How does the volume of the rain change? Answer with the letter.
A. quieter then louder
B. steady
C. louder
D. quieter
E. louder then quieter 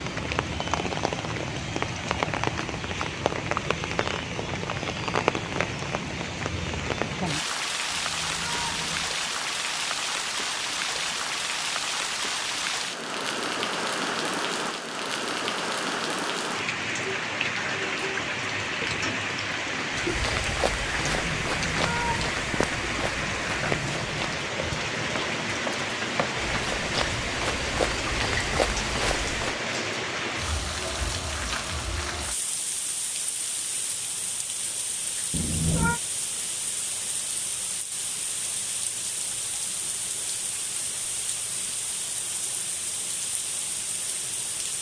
D.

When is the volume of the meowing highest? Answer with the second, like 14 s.
36 s.